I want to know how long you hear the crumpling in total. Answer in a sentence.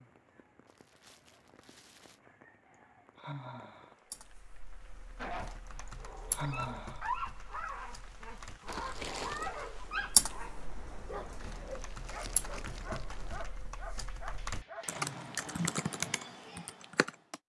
You can hear the crumpling for 3 seconds altogether.